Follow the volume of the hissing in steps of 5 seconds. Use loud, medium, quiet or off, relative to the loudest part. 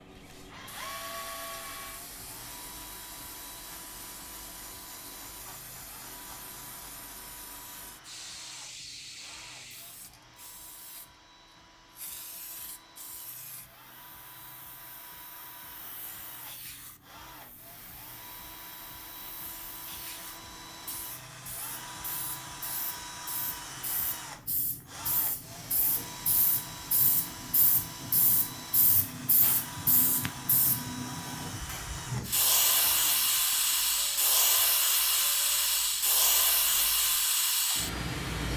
quiet, quiet, quiet, quiet, quiet, medium, loud, loud.